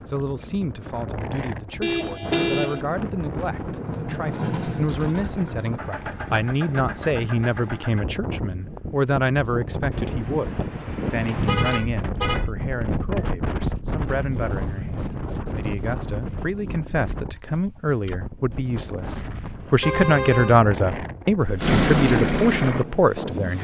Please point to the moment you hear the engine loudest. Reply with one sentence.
The volume of the engine peaks at 22 seconds.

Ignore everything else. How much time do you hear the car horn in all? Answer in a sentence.
The car horn can be heard for 3 seconds in total.